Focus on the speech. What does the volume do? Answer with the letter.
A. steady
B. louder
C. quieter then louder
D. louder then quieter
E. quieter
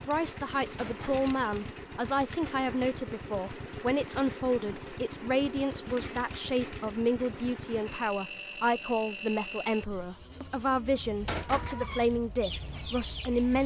A.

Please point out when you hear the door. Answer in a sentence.
You can hear the door from 0.8 to 1.2 s and from 11.2 to 12.1 s.